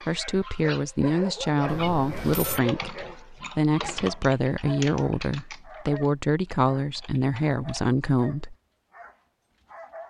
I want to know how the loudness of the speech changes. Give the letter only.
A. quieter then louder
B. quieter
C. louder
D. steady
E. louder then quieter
D.